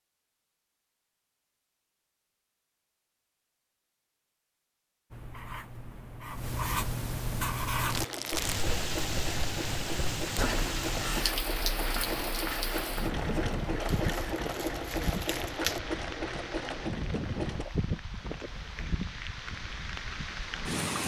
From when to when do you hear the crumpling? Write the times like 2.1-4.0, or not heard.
7.8-8.7, 13.8-15.8.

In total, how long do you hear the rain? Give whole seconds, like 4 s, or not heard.
13 s.